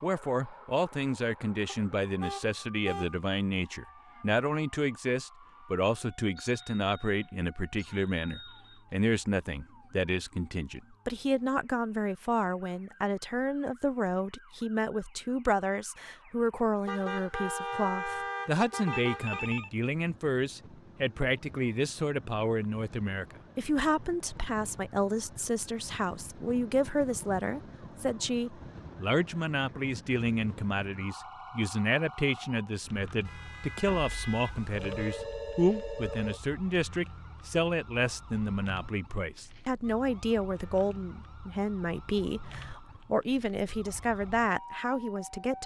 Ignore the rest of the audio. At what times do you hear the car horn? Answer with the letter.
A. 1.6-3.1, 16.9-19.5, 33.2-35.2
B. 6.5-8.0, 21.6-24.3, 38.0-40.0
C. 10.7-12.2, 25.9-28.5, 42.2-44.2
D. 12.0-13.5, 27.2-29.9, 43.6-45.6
A.